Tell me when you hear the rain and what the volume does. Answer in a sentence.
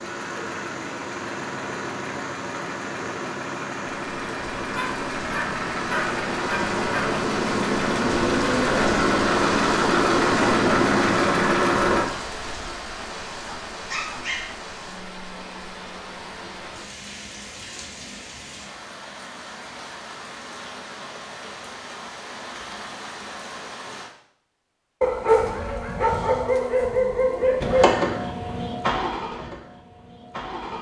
The rain can be heard from 0.0 to 24.1 s, getting louder then quieter.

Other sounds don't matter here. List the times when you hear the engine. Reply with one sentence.
You can hear the engine from 0.0 to 12.1 s and from 27.6 to 30.7 s.